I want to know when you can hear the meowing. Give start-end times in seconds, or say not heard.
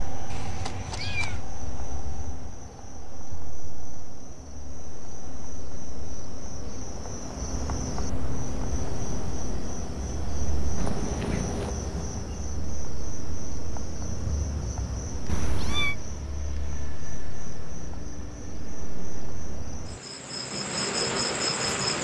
0.3-1.4, 10.8-11.8, 15.2-15.9.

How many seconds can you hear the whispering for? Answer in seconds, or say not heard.
not heard.